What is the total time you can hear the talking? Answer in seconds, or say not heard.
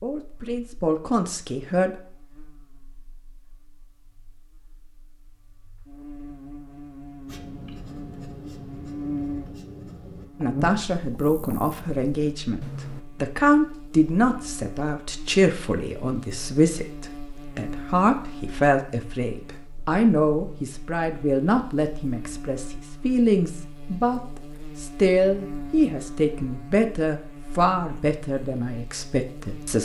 21 s.